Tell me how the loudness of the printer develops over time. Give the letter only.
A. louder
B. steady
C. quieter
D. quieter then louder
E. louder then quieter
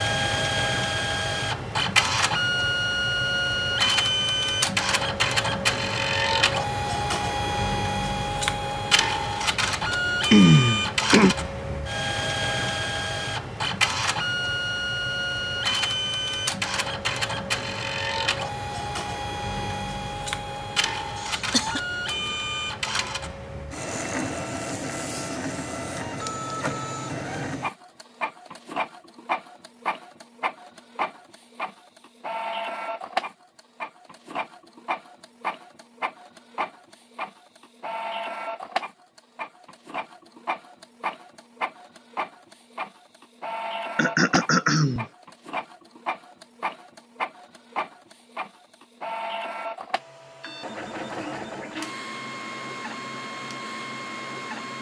C.